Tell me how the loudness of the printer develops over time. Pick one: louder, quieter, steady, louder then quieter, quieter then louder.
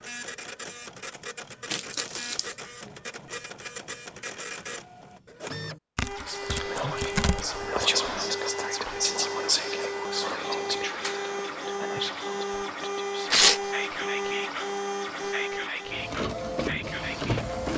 louder.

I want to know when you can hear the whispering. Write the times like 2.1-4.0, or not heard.
6.2-17.6.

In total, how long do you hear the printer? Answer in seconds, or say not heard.
18 s.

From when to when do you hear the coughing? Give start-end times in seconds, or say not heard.
not heard.